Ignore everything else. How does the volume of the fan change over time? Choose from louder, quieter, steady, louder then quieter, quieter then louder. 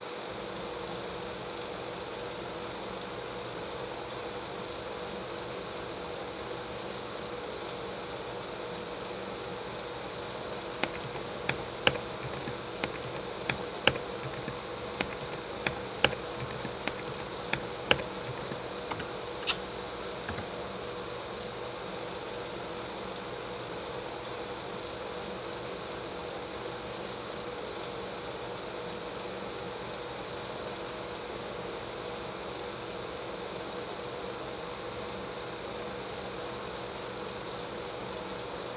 steady.